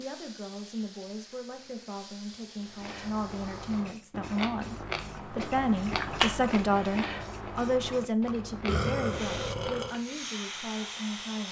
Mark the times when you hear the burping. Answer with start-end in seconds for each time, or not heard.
8.7-9.9.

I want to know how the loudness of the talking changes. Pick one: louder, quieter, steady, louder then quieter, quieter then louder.
louder then quieter.